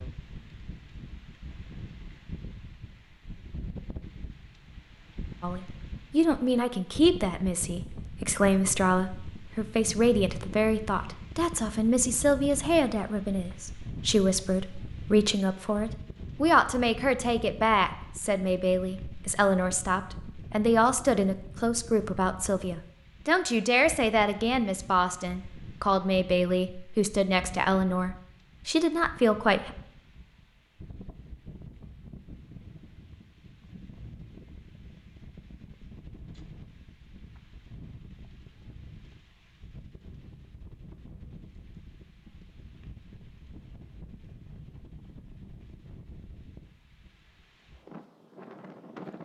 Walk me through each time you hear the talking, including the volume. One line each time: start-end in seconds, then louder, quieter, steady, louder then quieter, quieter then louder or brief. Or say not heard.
5.4-29.7 steady.